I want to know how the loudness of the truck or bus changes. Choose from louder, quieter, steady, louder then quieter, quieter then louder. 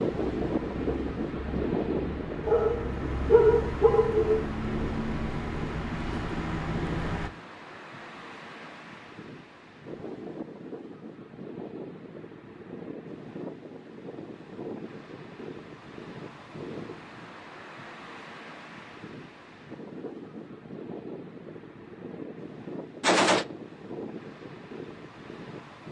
louder.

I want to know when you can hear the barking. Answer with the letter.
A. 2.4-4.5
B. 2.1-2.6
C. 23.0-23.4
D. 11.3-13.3
A.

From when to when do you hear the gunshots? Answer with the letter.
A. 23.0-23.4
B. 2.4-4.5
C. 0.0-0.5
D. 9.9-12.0
A.